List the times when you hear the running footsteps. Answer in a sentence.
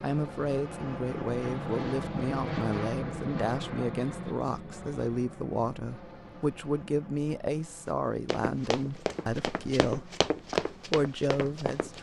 You can hear the running footsteps from 8.2 to 11.9 s.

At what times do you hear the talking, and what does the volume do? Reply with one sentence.
You can hear the talking from 0.0 to 11.9 s, at a steady volume.